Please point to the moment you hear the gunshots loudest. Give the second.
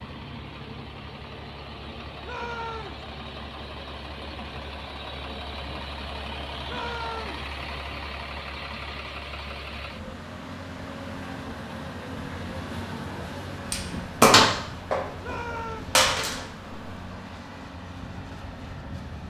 14 s.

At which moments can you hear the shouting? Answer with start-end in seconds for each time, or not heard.
2.2-3.0, 6.7-7.5, 15.2-15.9.